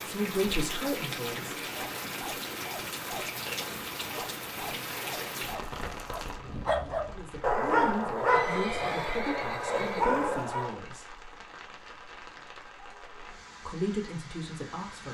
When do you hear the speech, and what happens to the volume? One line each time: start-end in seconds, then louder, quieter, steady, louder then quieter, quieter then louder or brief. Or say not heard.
0.0-1.6 brief
7.0-11.2 steady
13.7-15.0 brief.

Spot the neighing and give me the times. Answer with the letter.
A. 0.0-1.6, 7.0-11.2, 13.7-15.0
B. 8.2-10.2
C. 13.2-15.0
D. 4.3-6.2
B.